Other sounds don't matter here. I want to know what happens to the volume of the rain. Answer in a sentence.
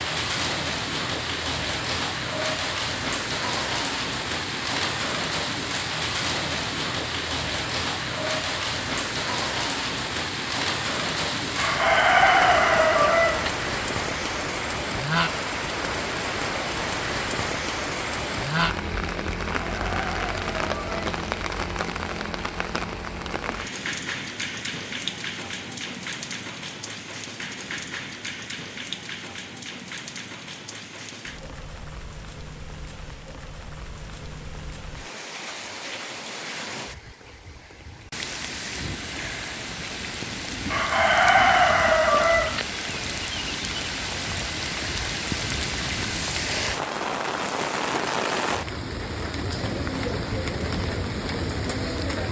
The volume of the rain goes down, then up.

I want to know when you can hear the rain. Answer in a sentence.
You can hear the rain from 0.0 to 52.2 s.